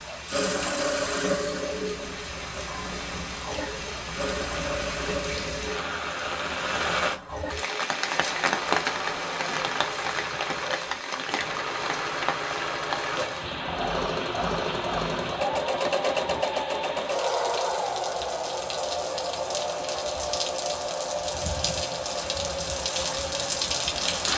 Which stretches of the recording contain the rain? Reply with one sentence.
The rain can be heard from 0.0 to 24.3 s.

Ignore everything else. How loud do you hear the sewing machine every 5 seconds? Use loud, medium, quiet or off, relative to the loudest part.
loud, medium, loud, loud, medium.